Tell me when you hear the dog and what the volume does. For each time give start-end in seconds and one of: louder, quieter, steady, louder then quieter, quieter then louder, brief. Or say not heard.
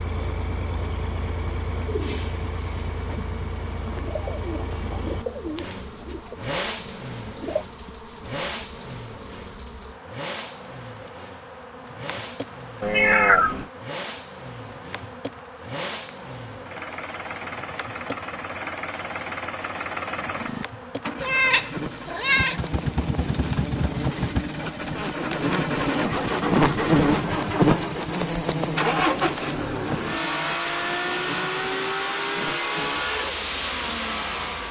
not heard.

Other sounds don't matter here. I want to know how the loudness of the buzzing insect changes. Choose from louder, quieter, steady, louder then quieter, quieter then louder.
louder.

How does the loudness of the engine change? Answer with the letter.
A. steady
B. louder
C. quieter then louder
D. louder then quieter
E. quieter
B.